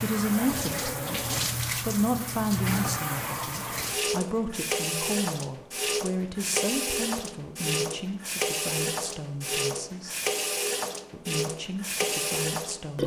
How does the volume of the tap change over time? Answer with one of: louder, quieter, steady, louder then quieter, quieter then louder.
steady.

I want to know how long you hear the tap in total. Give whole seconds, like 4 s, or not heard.
13 s.